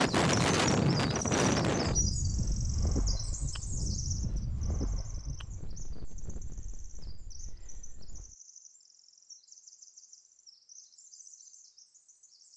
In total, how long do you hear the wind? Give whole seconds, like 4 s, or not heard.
8 s.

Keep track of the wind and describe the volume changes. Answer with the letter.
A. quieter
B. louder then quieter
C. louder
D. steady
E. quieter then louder
A.